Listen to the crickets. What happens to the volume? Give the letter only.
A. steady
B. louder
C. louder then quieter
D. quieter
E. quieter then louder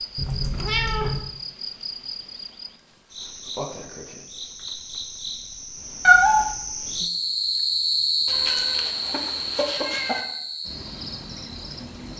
C.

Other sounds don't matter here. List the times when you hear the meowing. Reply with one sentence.
The meowing can be heard from 0.1 to 1.2 s, from 6.0 to 6.5 s and from 8.2 to 10.2 s.